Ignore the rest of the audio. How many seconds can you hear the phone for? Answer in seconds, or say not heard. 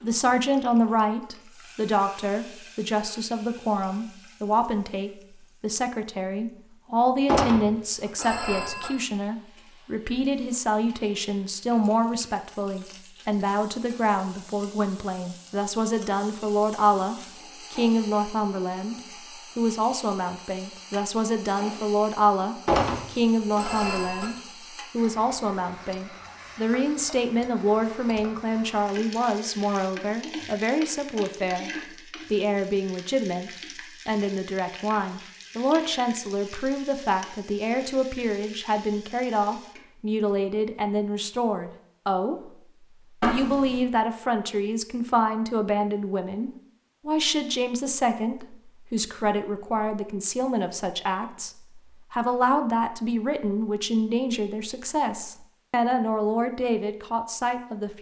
4 s.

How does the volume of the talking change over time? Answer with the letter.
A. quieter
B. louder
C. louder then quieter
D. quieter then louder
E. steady
E.